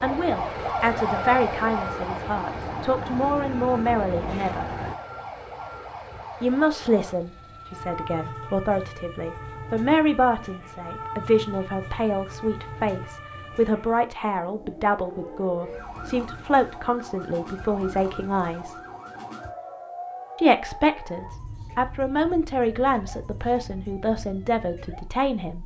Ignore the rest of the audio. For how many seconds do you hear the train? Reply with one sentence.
The train can be heard for 5 seconds in total.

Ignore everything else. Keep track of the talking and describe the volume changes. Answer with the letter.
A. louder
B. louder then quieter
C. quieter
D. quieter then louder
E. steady
E.